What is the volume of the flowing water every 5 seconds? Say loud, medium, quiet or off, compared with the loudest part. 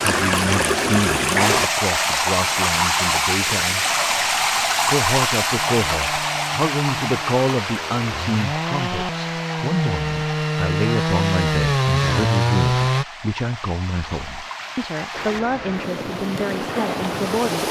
loud, medium, quiet, medium.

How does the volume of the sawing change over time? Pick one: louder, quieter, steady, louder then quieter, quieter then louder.
louder.